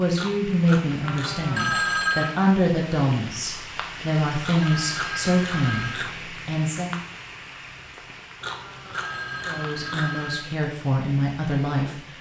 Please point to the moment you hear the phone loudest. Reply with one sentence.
The volume of the phone peaks at 2 seconds.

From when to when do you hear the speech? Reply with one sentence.
You can hear the speech from 0.0 to 7.0 s and from 9.4 to 12.0 s.